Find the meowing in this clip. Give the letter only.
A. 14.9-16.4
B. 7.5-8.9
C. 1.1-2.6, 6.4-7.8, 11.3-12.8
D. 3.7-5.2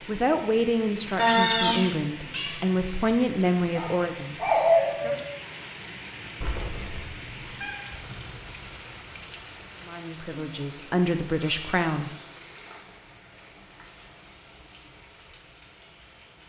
C.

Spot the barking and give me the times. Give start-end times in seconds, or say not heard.
3.7-5.2.